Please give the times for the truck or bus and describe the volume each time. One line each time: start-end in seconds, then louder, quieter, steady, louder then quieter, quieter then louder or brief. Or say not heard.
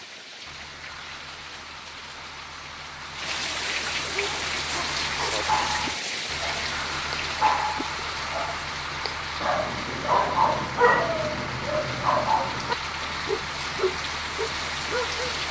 0.0-15.4 louder.